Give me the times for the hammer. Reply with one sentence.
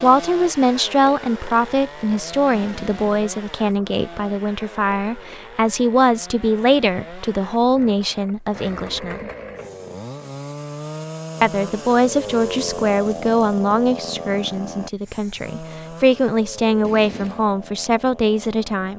The hammer can't be heard in this clip.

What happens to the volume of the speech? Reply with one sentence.
The volume of the speech stays about the same.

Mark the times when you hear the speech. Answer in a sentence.
You can hear the speech from 0.0 to 9.3 s and from 11.4 to 18.9 s.